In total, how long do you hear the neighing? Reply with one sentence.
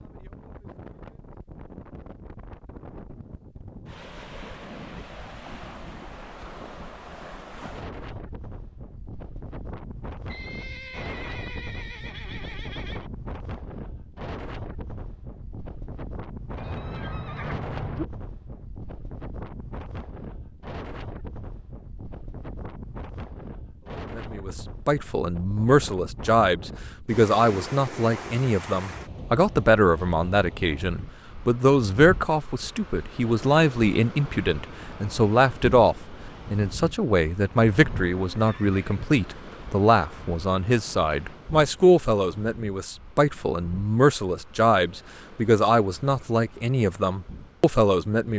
You can hear the neighing for 6 seconds altogether.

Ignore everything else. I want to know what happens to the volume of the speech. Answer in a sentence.
The loudness of the speech stays about the same.